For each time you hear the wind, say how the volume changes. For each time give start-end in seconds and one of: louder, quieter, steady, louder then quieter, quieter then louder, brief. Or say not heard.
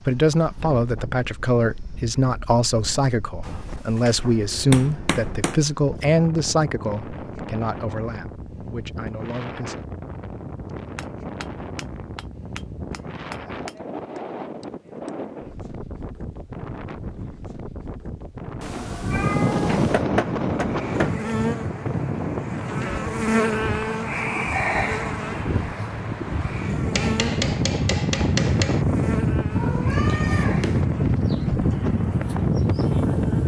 0.0-33.4 louder.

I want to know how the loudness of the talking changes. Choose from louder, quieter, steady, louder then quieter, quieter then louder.
quieter.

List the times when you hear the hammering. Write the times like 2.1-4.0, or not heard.
4.2-5.6, 10.9-13.8, 19.8-21.2, 26.9-28.9.